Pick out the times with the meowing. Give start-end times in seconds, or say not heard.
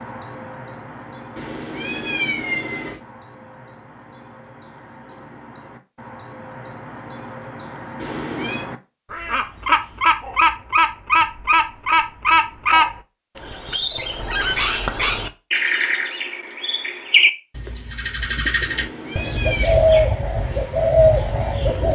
1.4-3.0, 8.0-8.7, 18.6-19.7.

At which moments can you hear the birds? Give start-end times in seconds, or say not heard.
0.0-21.9.